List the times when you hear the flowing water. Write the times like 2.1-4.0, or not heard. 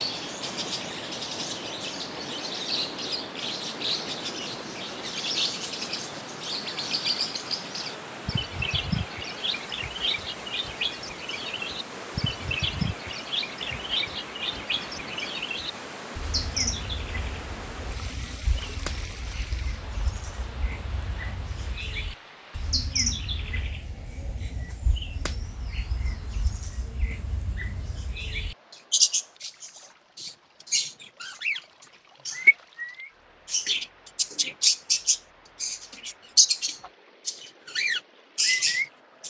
0.0-39.2.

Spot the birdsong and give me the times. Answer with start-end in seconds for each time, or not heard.
0.0-31.6, 32.2-39.2.